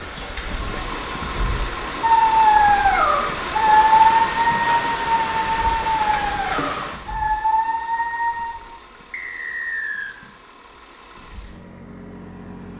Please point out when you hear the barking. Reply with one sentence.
You can hear the barking from 2.0 to 8.5 s.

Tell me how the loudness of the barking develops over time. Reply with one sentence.
The loudness of the barking goes down.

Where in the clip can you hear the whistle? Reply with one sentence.
You can hear the whistle from 9.1 to 10.2 s.